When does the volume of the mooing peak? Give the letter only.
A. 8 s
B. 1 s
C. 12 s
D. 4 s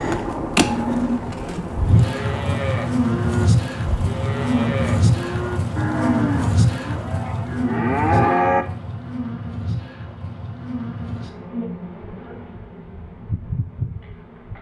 A.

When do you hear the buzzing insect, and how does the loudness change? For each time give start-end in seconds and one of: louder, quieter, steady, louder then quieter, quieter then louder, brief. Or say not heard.
0.0-14.5 quieter.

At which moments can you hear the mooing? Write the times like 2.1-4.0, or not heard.
0.6-8.7.